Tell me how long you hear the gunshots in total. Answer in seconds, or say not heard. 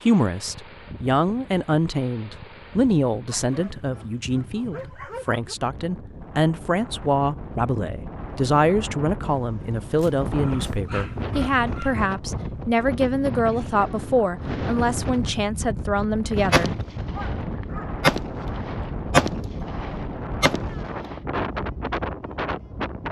5 s.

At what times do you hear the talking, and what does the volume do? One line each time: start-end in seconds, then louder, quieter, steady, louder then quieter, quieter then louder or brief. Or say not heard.
0.1-16.7 steady.